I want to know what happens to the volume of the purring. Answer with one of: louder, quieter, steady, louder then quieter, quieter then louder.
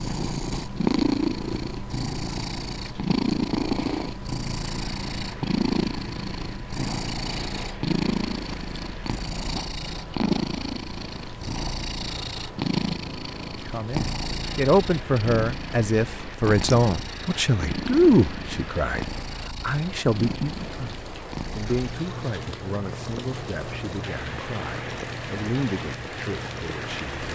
quieter.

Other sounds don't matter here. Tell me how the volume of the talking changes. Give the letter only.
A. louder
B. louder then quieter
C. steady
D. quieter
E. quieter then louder
D.